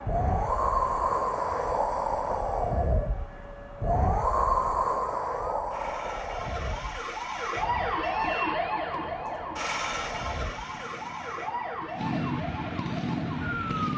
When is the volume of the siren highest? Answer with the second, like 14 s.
8 s.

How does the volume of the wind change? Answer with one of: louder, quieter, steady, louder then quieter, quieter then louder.
quieter.